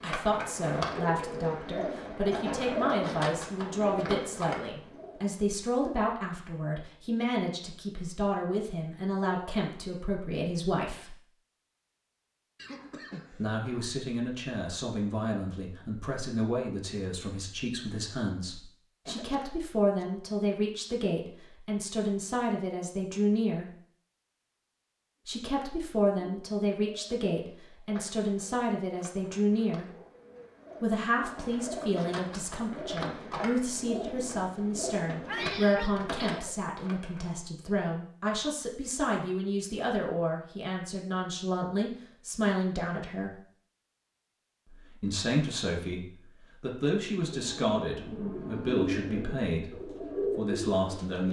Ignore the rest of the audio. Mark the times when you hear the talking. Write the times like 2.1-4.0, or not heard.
0.0-11.2, 13.3-23.6, 25.2-29.9, 30.8-43.4, 44.6-51.2.